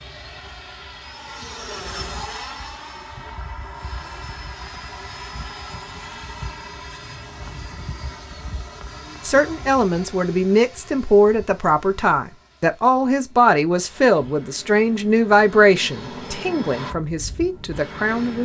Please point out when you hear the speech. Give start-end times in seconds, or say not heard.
9.2-18.4.